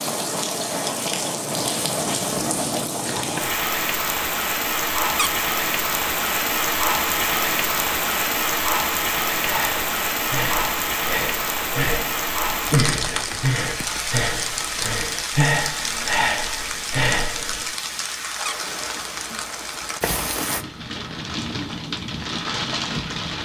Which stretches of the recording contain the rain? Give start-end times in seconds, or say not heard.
0.0-23.3.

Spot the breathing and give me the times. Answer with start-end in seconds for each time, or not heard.
9.3-17.6.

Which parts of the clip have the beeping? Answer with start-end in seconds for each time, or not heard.
not heard.